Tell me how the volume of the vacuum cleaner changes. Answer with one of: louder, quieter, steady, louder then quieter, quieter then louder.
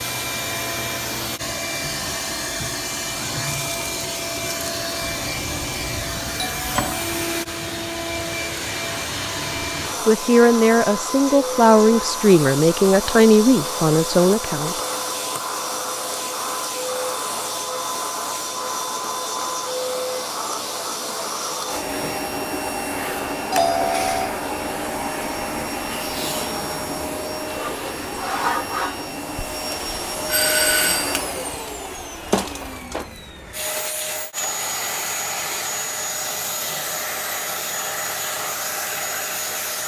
steady.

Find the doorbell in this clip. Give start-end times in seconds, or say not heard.
5.0-7.0, 23.5-24.3, 30.3-31.2.